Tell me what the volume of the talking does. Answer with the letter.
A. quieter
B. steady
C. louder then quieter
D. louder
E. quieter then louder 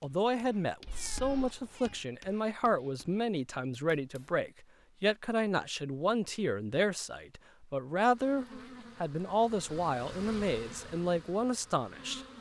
B.